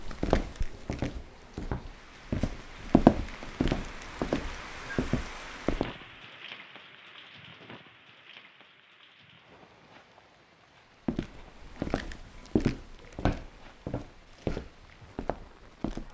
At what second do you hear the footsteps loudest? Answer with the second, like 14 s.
3 s.